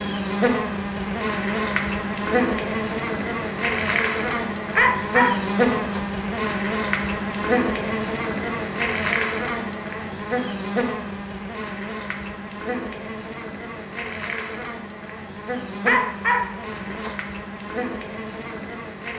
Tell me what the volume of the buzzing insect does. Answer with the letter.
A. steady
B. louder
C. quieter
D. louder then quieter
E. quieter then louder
C.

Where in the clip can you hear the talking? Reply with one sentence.
The talking can't be heard in this clip.